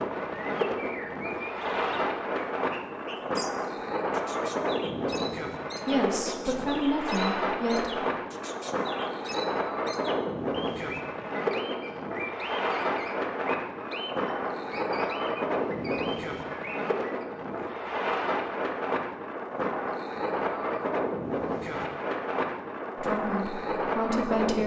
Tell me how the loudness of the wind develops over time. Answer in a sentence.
The loudness of the wind stays about the same.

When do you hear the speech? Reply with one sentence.
You can hear the speech from 5.8 to 8.0 s and from 22.9 to 24.6 s.